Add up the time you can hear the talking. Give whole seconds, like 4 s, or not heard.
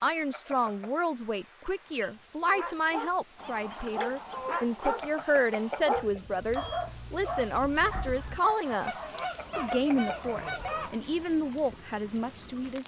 13 s.